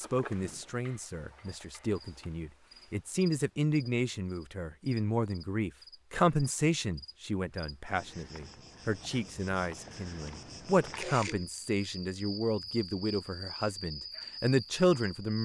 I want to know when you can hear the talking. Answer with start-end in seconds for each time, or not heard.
0.0-15.4.